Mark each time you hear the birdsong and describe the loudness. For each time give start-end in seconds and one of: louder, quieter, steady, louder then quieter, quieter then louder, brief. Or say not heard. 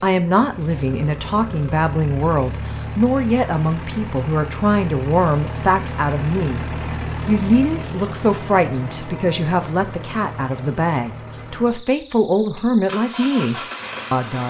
not heard.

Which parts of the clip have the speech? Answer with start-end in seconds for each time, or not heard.
0.0-6.6, 7.2-14.4.